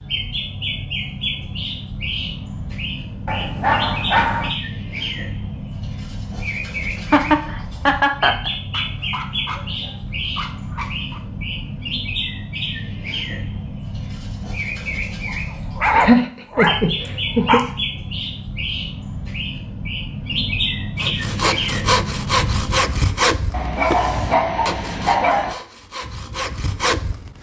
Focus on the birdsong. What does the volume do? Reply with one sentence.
The volume of the birdsong stays about the same.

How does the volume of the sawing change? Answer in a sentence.
The volume of the sawing goes down, then up.